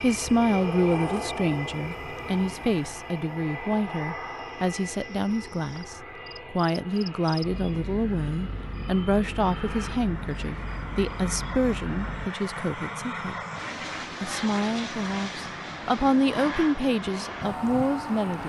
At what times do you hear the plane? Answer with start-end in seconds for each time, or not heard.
0.0-18.4.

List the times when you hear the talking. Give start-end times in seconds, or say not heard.
0.0-13.3, 14.2-18.4.